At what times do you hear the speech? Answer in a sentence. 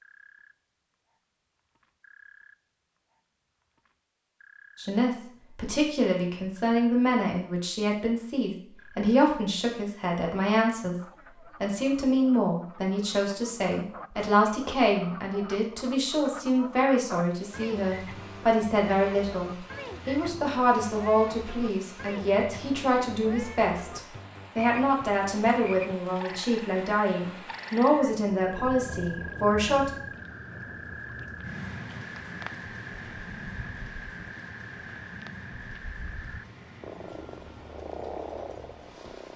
The speech can be heard from 4.8 to 10.9 s and from 11.6 to 29.9 s.